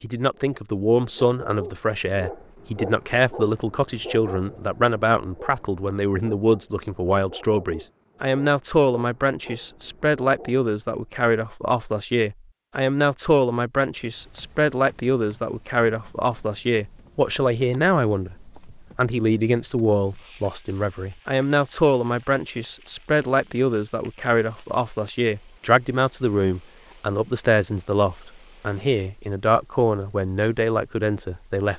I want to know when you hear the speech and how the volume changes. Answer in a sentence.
You can hear the speech from 0.0 to 31.7 s, at a steady volume.